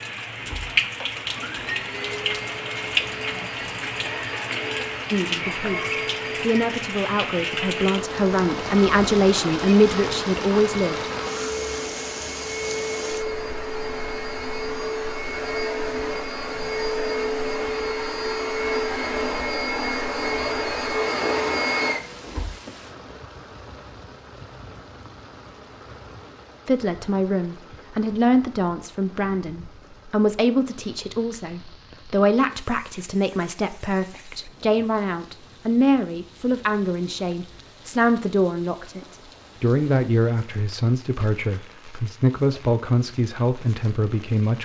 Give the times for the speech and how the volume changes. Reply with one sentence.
You can hear the speech from 5.1 to 11.1 s, getting louder; and from 26.6 to 44.6 s, at a steady volume.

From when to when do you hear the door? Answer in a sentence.
You can't hear the door here.